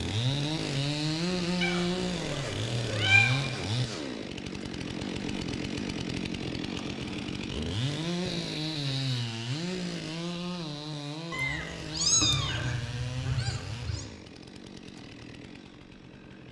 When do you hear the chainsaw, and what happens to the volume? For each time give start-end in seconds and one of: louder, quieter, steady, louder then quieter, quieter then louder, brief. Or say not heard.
0.0-16.4 quieter.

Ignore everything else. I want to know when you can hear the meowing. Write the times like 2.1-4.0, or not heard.
1.6-3.5, 8.2-9.2, 11.3-14.1.